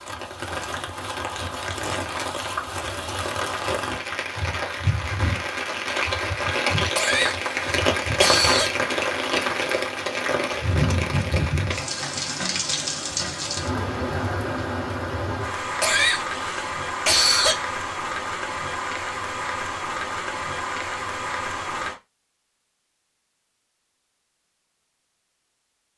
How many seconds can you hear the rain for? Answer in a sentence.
The rain can be heard for 22 seconds in total.